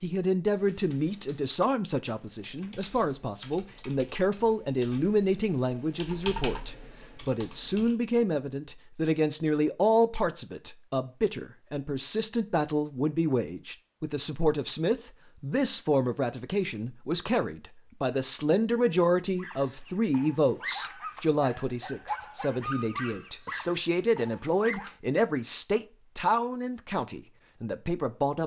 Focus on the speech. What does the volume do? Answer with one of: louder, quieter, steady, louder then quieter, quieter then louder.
steady.